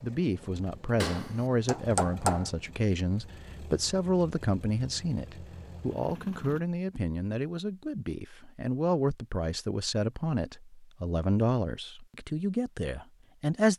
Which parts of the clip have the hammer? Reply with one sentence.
You can hear the hammer from 1.0 to 2.5 s.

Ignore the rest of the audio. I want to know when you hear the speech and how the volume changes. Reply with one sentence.
The speech can be heard from 0.0 to 13.7 s, at a steady volume.